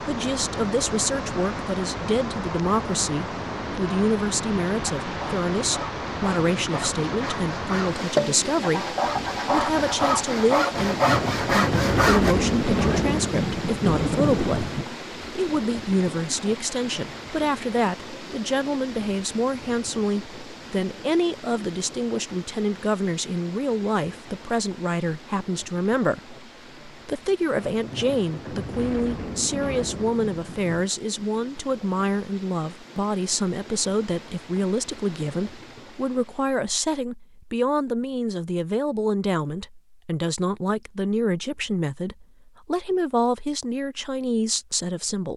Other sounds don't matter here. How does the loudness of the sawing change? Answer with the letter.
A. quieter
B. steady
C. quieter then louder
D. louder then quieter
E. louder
E.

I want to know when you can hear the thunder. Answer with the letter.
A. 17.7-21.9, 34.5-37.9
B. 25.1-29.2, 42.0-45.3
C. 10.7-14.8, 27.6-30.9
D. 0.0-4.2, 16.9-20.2
C.